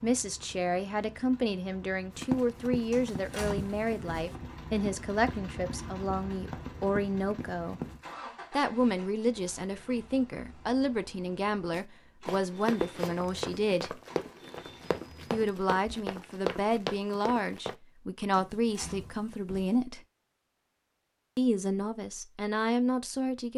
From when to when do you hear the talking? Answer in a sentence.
The talking can be heard from 0.0 to 7.8 s, from 8.5 to 13.9 s, from 15.3 to 20.0 s and from 21.4 to 23.5 s.